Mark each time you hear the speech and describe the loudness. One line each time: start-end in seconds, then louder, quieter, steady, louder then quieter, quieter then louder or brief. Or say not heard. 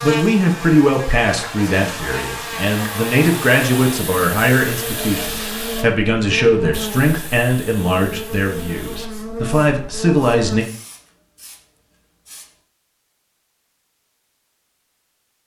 0.0-10.7 steady.